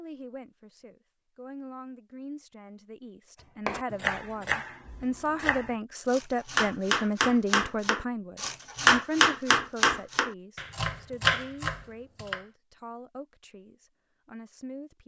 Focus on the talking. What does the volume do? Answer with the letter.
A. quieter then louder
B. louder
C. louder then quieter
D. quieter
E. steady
C.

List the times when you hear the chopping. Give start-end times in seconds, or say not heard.
3.6-12.4.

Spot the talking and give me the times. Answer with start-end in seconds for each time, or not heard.
0.0-15.0.